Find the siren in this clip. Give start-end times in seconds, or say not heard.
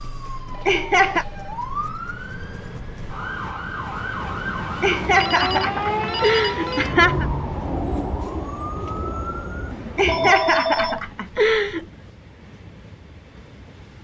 0.0-10.3.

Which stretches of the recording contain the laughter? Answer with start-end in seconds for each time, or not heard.
0.7-1.2, 4.8-7.2, 9.9-11.8.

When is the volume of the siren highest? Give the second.
6 s.